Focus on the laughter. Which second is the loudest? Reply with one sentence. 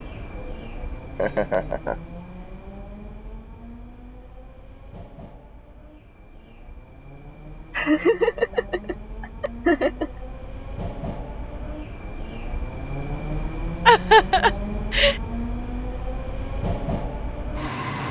The loudest moment of the laughter is at 14 seconds.